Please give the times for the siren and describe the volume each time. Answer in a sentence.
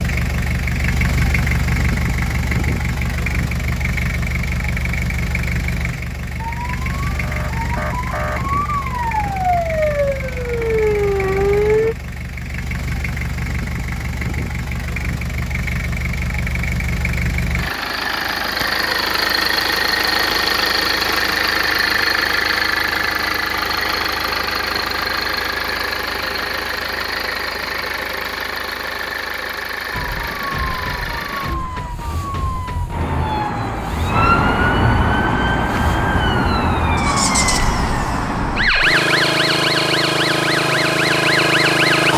You can hear the siren from 6.3 to 11.9 s, getting louder; and from 29.9 to 42.1 s, getting louder.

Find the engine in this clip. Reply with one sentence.
The engine can be heard from 0.0 to 42.1 s.